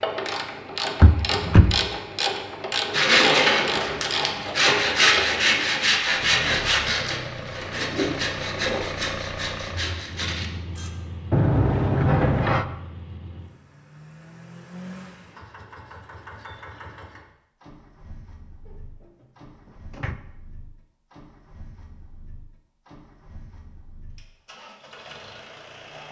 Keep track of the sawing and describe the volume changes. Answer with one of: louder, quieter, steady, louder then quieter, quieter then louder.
quieter.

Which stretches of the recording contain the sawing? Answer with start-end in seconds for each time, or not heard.
2.9-10.9.